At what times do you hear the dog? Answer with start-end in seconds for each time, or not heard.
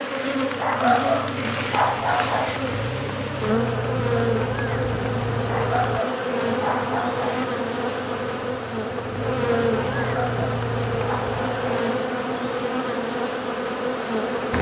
0.6-2.6, 5.5-7.5, 9.9-11.7.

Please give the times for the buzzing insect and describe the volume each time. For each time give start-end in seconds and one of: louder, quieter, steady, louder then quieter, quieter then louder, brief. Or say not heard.
0.0-14.5 steady.